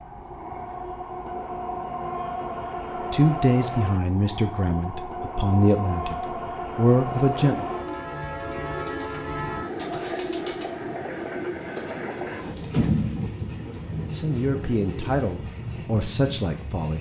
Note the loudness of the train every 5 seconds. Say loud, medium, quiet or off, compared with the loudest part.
loud, loud, loud, medium.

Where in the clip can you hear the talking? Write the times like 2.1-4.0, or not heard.
3.1-7.7, 14.1-16.9.